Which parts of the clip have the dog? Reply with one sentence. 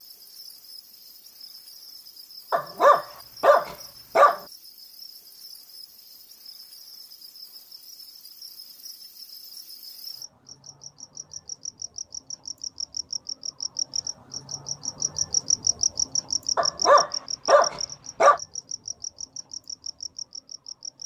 The dog can be heard from 2.5 to 4.4 s and from 16.6 to 18.4 s.